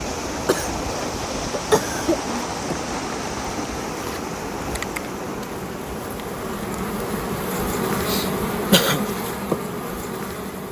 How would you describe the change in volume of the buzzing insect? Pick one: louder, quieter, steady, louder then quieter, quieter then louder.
louder.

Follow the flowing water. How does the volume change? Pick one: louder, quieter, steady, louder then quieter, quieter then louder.
quieter.